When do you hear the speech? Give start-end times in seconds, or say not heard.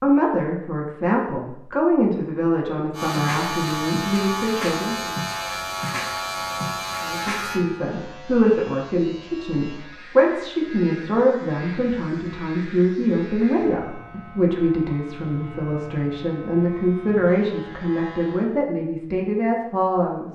0.0-5.2, 7.0-20.3.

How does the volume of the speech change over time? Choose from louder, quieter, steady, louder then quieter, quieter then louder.
steady.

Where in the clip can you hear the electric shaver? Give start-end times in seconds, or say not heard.
2.9-18.4.